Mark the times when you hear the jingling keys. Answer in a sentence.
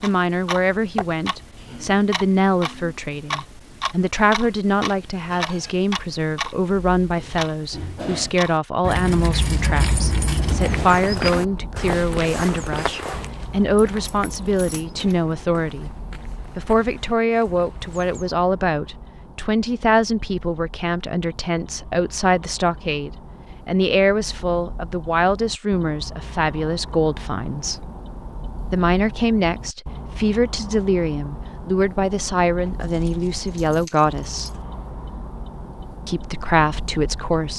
You can hear the jingling keys from 8.8 to 10.8 s, from 13.8 to 15.2 s and from 32.6 to 34.6 s.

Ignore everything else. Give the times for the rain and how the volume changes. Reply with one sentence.
The rain can't be heard in this clip.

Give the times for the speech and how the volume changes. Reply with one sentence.
The speech can be heard from 0.0 to 27.9 s, at a steady volume; from 28.6 to 34.5 s, at a steady volume; and briefly from 36.0 to 37.5 s.